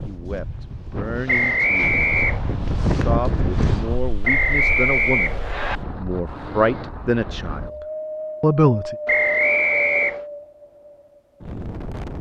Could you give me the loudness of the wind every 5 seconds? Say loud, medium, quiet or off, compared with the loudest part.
loud, loud, medium.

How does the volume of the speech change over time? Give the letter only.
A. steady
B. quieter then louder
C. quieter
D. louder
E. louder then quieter
D.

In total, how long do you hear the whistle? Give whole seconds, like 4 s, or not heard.
4 s.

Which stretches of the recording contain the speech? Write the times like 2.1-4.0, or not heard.
0.0-8.9.